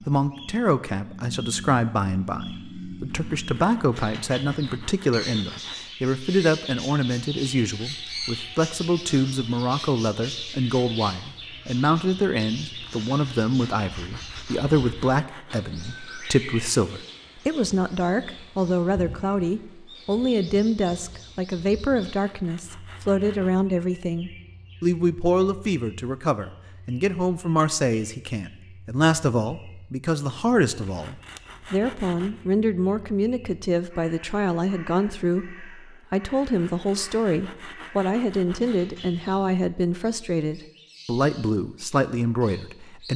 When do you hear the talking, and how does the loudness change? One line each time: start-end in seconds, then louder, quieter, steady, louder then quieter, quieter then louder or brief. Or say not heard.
0.1-43.1 steady.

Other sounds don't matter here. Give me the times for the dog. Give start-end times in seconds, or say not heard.
not heard.